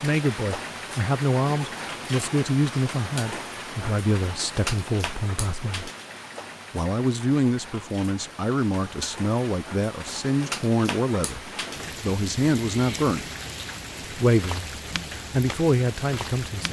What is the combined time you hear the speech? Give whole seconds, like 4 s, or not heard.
15 s.